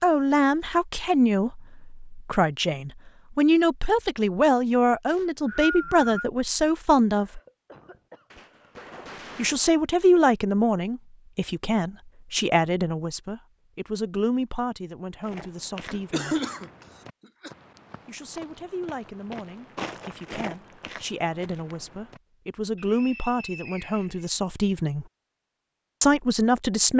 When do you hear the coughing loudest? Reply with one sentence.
The volume of the coughing peaks at 16 seconds.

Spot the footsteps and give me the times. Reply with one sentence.
You can hear the footsteps from 15.2 to 22.2 s.